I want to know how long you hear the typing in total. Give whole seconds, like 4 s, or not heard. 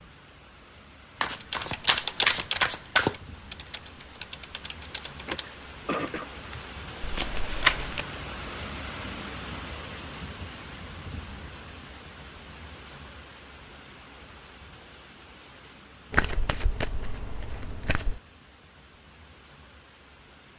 5 s.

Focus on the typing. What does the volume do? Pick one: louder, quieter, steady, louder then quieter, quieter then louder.
quieter.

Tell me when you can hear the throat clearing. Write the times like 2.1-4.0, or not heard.
5.2-6.3.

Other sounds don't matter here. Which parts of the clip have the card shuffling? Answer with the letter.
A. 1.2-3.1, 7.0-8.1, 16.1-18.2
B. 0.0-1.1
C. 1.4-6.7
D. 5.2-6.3
A.